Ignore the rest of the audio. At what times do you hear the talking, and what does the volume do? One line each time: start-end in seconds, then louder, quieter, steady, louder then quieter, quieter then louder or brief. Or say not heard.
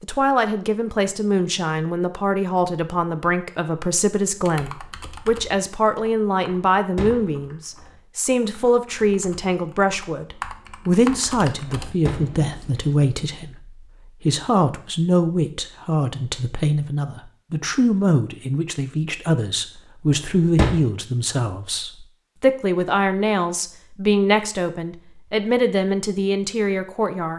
0.0-27.3 steady.